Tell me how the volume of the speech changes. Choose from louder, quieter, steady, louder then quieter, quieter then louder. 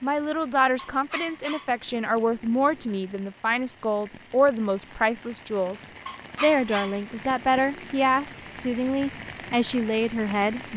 steady.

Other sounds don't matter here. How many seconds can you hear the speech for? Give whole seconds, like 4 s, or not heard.
11 s.